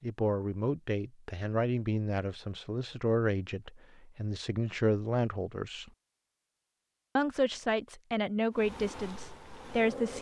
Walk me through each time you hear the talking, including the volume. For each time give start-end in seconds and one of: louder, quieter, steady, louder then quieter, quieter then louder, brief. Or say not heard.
0.0-5.9 quieter then louder
7.2-10.1 brief.